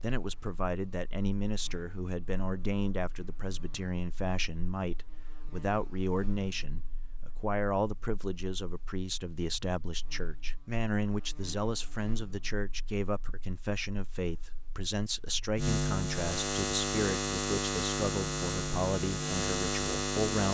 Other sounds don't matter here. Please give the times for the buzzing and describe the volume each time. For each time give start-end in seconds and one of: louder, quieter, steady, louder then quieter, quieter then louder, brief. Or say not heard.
0.0-20.4 louder.